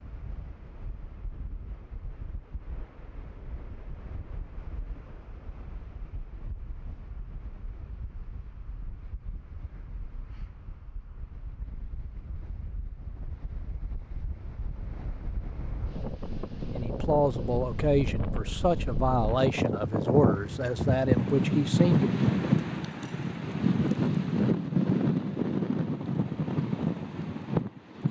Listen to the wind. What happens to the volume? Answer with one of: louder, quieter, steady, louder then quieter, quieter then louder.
louder.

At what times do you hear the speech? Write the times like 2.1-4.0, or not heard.
16.7-22.1.